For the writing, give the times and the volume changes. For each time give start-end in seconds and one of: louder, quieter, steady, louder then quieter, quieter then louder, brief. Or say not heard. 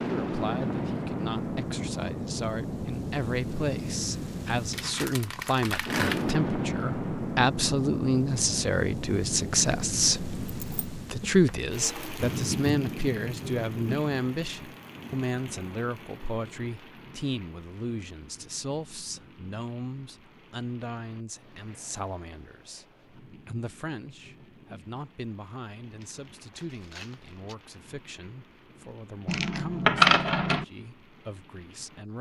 not heard.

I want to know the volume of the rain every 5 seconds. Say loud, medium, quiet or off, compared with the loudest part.
loud, loud, loud, quiet, quiet, quiet, quiet.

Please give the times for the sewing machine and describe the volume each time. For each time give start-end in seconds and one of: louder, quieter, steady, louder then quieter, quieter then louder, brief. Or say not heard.
not heard.